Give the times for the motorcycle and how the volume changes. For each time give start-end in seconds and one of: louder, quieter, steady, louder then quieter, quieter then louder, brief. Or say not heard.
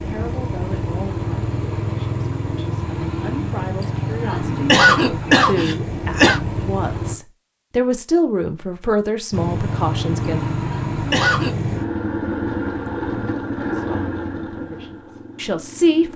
0.0-7.2 steady
9.3-16.1 quieter.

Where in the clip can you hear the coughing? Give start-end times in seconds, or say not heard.
3.8-6.4, 10.7-11.6.